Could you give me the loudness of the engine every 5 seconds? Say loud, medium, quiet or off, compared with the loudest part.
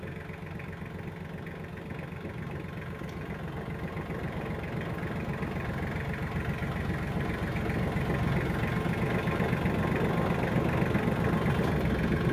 medium, loud, loud.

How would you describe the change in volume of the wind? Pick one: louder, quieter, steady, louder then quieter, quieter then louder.
louder.